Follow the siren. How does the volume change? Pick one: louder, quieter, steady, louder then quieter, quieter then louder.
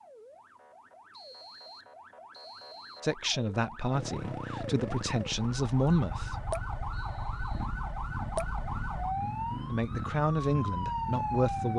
louder.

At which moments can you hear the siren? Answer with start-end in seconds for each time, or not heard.
0.0-11.7.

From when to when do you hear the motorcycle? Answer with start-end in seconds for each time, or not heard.
3.9-11.7.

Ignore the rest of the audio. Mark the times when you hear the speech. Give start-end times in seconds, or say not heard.
3.0-6.5, 9.7-11.7.